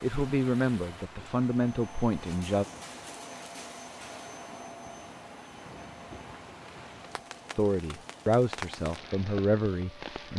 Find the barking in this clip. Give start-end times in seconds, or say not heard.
not heard.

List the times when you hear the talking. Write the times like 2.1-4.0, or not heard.
0.0-2.6, 7.5-10.3.